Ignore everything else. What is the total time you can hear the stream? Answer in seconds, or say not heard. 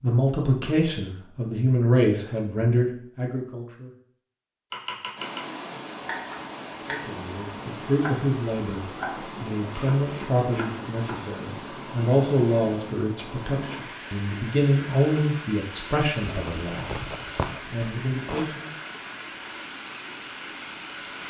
16 s.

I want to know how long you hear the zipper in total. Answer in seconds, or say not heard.
2 s.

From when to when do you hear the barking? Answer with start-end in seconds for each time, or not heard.
not heard.